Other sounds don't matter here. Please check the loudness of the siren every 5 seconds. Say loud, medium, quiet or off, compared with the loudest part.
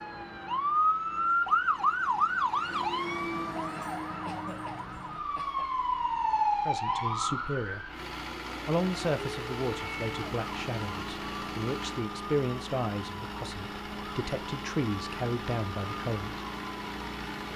loud, loud, quiet, quiet.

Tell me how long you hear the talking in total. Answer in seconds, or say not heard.
9 s.